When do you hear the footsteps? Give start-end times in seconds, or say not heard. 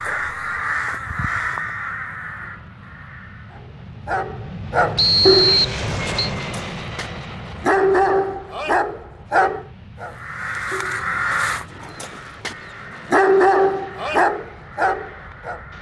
not heard.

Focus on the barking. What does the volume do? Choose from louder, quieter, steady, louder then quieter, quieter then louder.
quieter then louder.